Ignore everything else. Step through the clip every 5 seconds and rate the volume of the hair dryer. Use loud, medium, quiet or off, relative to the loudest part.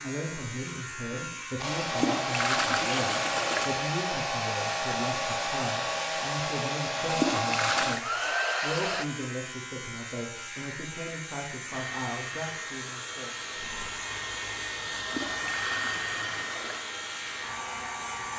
loud, loud, medium, medium.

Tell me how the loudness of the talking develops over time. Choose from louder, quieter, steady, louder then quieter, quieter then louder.
steady.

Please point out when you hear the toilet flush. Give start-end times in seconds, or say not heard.
1.8-3.6, 7.0-8.0, 14.8-16.8.